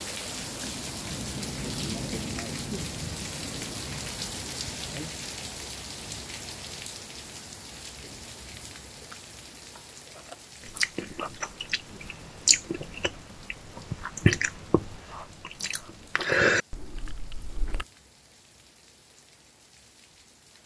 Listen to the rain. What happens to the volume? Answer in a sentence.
The volume of the rain goes down.